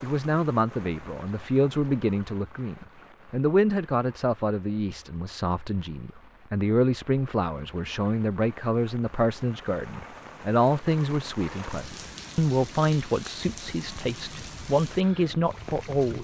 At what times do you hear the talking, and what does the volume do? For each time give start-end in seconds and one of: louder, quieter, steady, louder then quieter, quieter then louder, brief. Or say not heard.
0.0-16.1 steady.